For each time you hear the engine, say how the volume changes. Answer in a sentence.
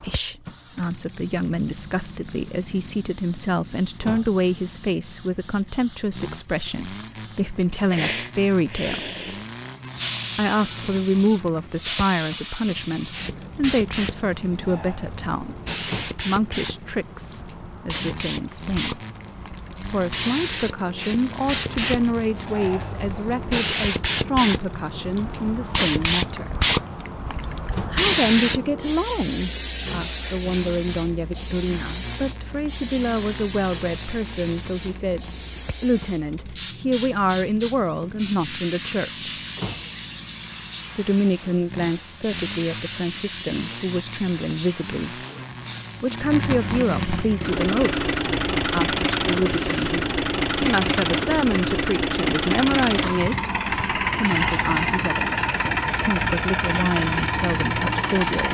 You can hear the engine from 0.0 to 58.4 s, getting louder.